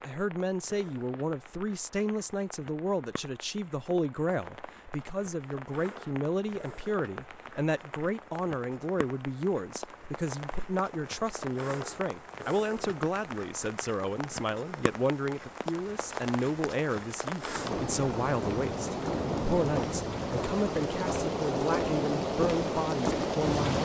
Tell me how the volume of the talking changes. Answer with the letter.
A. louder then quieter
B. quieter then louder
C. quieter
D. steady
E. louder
D.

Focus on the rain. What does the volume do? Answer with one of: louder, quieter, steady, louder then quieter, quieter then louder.
louder.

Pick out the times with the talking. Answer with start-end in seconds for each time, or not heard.
0.0-23.7.